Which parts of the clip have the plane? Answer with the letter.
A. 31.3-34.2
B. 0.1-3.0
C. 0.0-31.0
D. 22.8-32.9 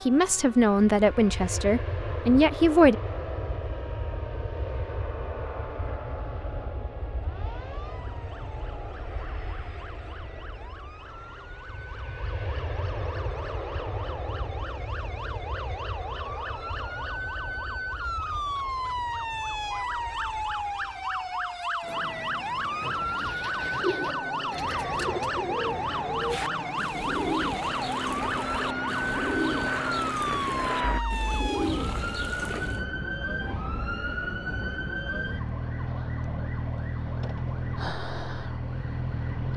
C.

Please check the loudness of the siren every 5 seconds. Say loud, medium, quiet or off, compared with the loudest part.
quiet, quiet, quiet, loud, loud, loud, loud, loud.